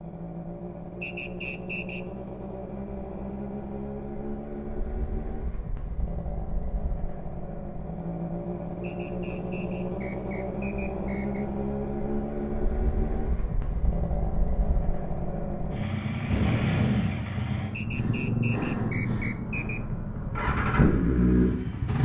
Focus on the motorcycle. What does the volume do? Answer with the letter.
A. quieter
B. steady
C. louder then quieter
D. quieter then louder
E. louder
E.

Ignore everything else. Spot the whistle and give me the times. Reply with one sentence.
The whistle can be heard from 1.0 to 2.0 s, from 8.8 to 11.4 s and from 17.7 to 19.8 s.